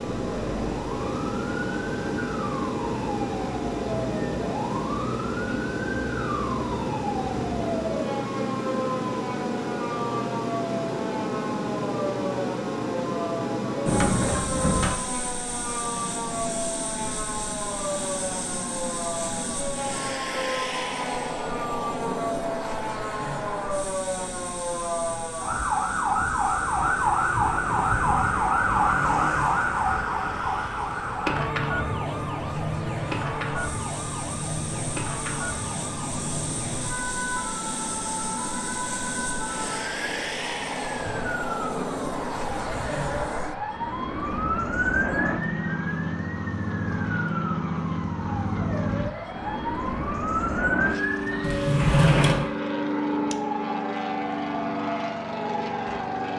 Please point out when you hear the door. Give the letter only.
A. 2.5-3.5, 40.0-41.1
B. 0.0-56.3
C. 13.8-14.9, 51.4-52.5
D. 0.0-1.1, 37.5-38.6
C.